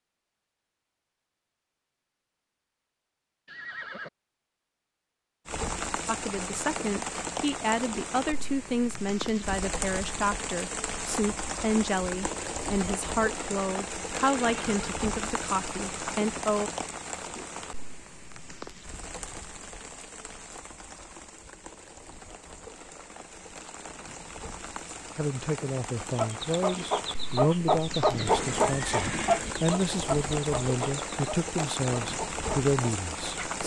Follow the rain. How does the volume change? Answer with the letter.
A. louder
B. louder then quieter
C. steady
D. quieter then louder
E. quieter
D.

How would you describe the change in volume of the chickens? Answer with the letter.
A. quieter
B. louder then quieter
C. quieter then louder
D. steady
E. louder
A.